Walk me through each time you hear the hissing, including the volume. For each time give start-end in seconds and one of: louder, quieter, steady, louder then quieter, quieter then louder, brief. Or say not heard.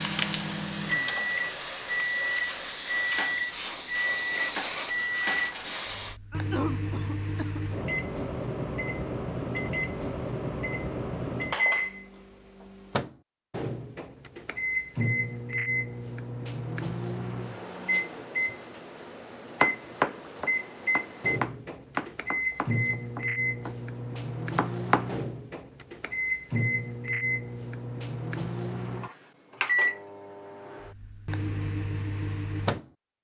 0.0-6.2 steady.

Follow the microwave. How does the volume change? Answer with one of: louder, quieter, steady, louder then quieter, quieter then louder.
steady.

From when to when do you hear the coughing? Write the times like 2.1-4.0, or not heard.
6.3-7.7.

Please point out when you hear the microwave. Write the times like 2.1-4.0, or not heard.
0.0-32.9.